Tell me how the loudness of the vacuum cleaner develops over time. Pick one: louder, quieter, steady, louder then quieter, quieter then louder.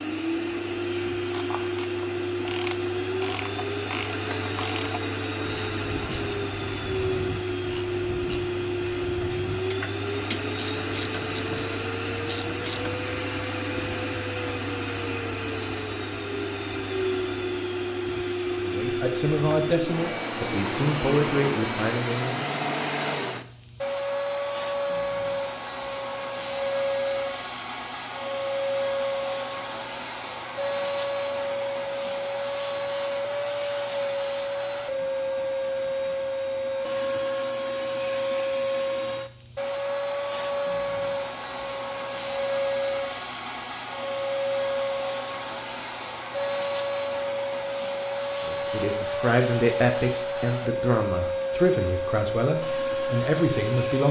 steady.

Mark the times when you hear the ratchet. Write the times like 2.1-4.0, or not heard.
1.1-13.1.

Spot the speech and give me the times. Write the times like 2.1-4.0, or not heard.
18.6-22.5, 48.4-54.0.